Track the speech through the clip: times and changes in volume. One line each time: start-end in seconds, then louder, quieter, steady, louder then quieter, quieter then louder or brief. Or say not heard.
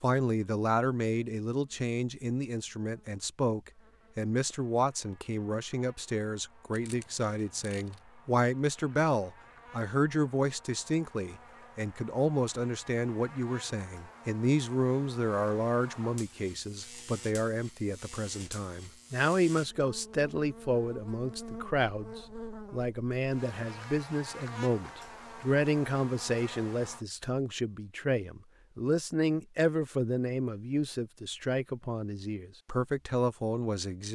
0.0-34.1 steady.